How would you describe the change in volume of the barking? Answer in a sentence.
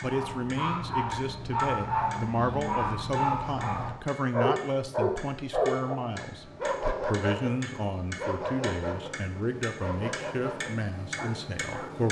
The loudness of the barking goes down.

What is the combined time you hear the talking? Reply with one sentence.
You can hear the talking for 12 seconds altogether.